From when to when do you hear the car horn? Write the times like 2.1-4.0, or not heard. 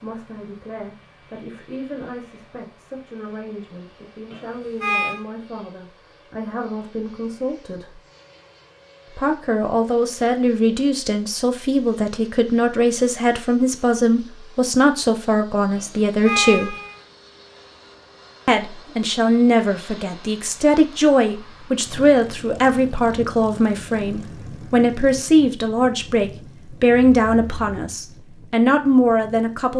4.3-5.2, 15.8-17.0, 26.9-27.8.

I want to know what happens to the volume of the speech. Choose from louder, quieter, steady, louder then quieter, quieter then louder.
louder.